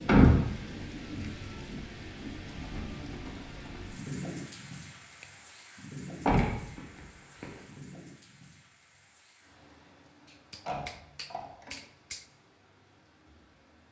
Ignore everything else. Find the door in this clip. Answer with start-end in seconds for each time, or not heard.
0.1-0.6, 6.2-7.5, 10.7-11.8.